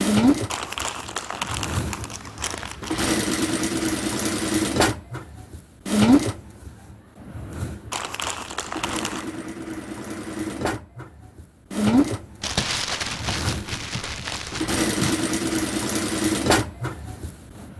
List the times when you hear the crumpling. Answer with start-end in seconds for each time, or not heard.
0.5-3.2, 7.9-9.3, 12.4-15.2.